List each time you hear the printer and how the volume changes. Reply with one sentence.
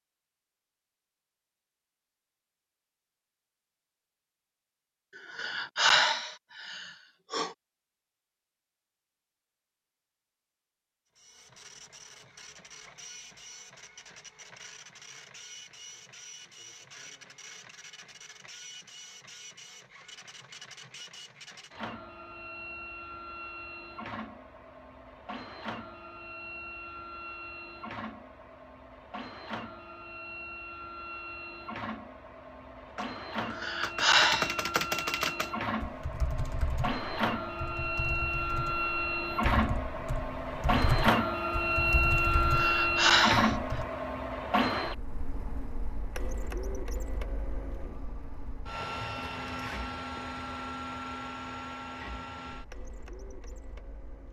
The printer can be heard from 11.2 to 54.2 s, getting louder then quieter.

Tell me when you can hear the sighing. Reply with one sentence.
You can hear the sighing from 5.2 to 7.5 s, from 33.5 to 34.5 s and from 42.5 to 43.5 s.